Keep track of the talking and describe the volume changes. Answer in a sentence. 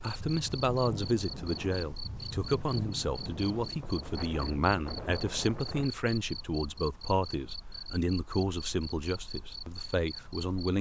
The loudness of the talking stays about the same.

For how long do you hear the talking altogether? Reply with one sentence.
You can hear the talking for 11 seconds altogether.